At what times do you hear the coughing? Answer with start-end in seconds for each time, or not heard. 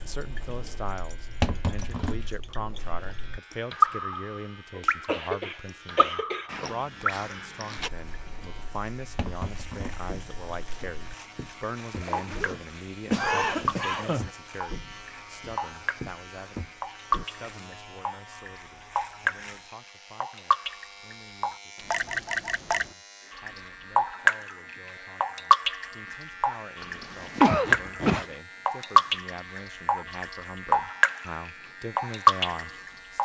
4.8-6.5, 13.1-14.3, 26.8-28.2.